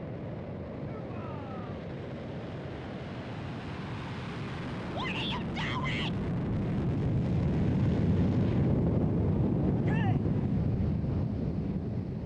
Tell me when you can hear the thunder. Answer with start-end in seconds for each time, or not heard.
not heard.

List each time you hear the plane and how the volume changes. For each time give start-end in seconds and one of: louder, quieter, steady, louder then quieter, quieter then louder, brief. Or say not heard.
0.0-12.2 louder.